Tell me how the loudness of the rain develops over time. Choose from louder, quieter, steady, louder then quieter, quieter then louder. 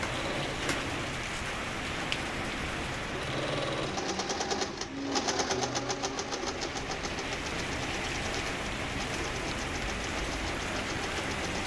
quieter then louder.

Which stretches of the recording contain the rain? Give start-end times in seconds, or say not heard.
0.0-11.6.